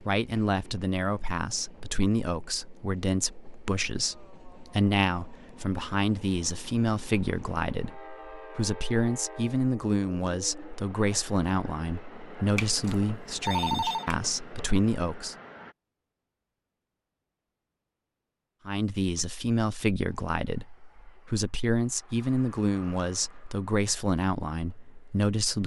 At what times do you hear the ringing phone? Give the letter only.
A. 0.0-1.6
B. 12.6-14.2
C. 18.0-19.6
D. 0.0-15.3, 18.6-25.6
B.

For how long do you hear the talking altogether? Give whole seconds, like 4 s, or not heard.
22 s.